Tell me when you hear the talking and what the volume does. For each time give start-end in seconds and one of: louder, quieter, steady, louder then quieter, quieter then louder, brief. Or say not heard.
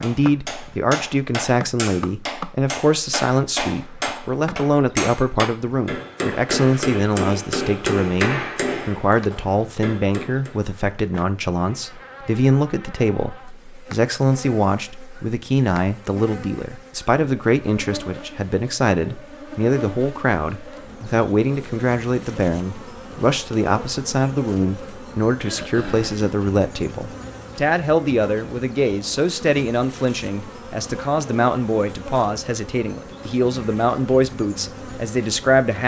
0.0-35.8 steady.